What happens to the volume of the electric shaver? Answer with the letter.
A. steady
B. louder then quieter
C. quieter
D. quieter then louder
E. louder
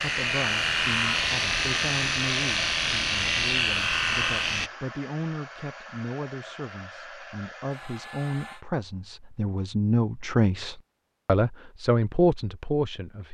A.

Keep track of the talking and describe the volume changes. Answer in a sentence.
The volume of the talking goes up.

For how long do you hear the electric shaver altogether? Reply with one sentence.
You can hear the electric shaver for 5 seconds altogether.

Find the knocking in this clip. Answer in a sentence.
The knocking can't be heard in this clip.